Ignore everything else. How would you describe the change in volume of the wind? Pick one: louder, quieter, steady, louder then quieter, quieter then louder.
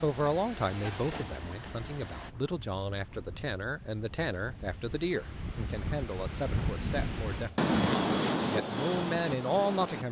louder.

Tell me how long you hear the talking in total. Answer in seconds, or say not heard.
10 s.